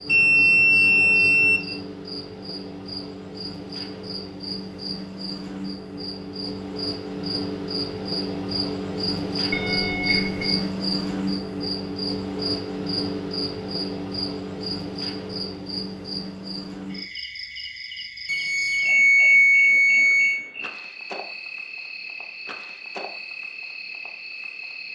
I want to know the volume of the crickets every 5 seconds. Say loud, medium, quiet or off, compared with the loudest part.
medium, loud, loud, medium, medium.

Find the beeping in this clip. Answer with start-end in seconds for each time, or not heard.
0.1-1.6, 9.5-10.6, 18.2-20.4.